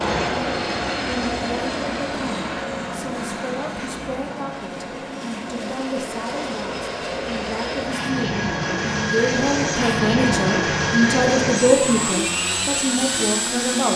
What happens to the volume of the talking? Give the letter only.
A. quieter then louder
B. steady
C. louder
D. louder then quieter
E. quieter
C.